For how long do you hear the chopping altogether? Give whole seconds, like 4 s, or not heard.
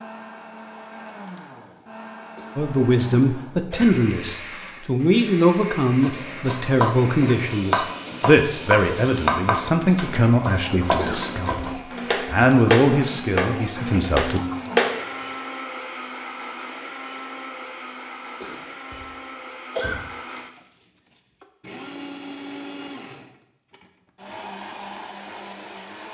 9 s.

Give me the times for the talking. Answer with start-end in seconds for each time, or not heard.
2.5-14.4.